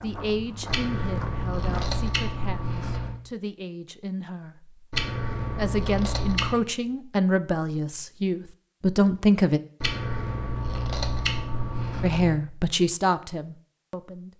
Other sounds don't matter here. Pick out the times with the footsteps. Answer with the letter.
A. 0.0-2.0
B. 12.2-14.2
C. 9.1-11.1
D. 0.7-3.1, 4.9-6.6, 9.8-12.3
A.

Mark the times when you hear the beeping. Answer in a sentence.
The beeping can't be heard in this clip.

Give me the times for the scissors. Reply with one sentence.
The scissors can be heard from 0.7 to 3.1 s, from 4.9 to 6.6 s and from 9.8 to 12.3 s.